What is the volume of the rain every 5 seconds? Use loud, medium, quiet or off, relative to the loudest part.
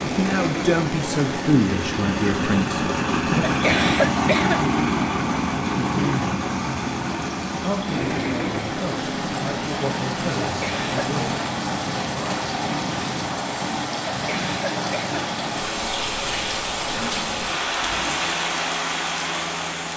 medium, medium, loud, loud.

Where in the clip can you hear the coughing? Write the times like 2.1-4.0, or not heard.
3.5-4.6, 10.4-11.1, 14.1-15.2.